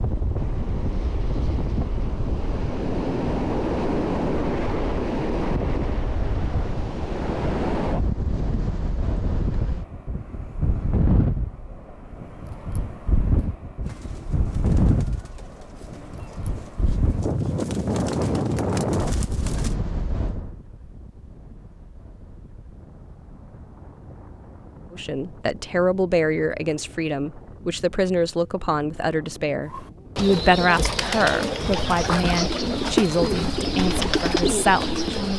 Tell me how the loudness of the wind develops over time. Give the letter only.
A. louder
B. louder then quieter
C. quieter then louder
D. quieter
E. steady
D.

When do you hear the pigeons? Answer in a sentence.
You can hear the pigeons from 13.8 to 19.8 s and from 29.7 to 35.3 s.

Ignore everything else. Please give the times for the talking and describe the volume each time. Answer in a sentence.
The talking can be heard from 24.9 to 35.3 s, at a steady volume.